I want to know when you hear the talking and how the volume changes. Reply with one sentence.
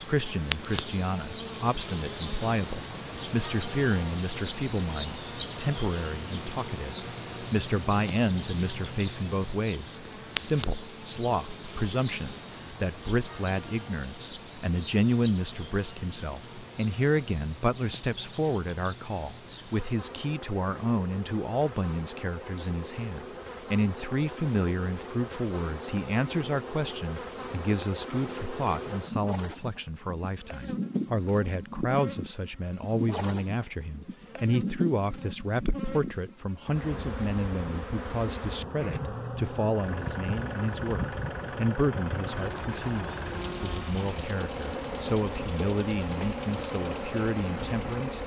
You can hear the talking from 0.0 to 48.2 s, at a steady volume.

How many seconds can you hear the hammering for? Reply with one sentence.
You can't hear the hammering here.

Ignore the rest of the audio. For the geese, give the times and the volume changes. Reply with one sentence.
You can't hear the geese here.